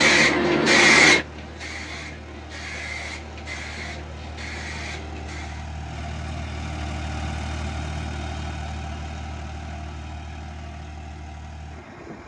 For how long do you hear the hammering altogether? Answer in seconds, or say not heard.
not heard.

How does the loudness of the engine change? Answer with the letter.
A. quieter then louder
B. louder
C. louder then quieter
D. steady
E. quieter
C.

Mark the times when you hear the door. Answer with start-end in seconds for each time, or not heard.
not heard.